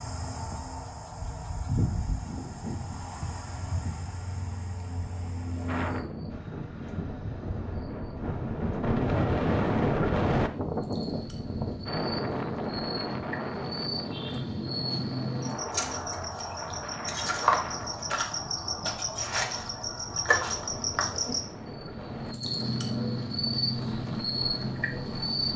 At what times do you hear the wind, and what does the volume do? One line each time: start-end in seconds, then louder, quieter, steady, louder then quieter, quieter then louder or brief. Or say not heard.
5.7-25.5 quieter.